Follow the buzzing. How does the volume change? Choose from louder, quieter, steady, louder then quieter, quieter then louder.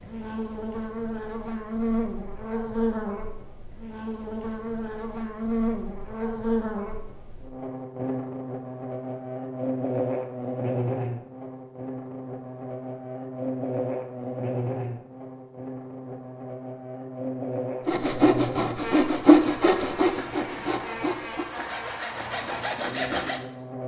quieter.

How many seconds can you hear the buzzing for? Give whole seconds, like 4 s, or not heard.
24 s.